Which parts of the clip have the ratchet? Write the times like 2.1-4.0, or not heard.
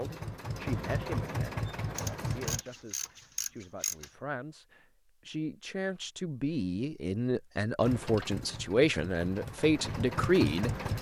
1.9-4.1.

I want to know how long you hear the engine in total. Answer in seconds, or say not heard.
6 s.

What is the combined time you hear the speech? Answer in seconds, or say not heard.
11 s.